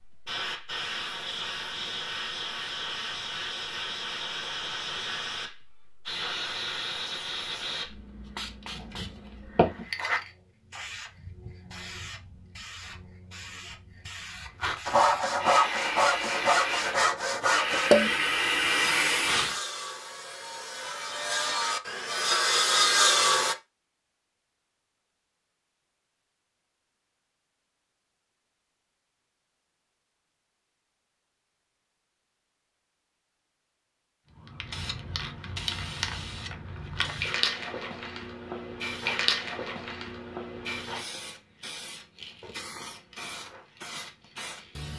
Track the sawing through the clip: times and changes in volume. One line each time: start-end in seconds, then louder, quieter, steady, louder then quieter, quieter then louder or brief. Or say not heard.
14.8-23.6 quieter then louder.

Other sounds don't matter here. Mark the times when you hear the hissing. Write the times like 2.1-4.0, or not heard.
0.0-19.6, 34.4-44.9.